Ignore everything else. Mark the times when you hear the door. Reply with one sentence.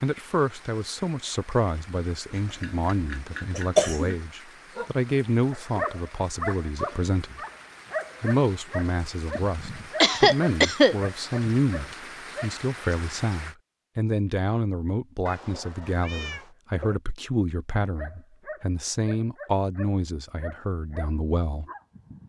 The door can't be heard in this clip.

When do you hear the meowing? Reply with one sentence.
You can hear the meowing from 15.2 to 16.5 s.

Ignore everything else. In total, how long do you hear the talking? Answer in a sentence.
You can hear the talking for 21 seconds altogether.